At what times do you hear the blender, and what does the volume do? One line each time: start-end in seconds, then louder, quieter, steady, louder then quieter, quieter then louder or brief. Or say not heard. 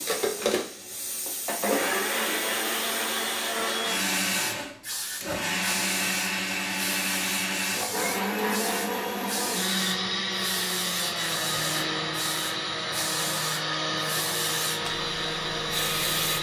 0.0-16.3 steady.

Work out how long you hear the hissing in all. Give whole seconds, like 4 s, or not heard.
16 s.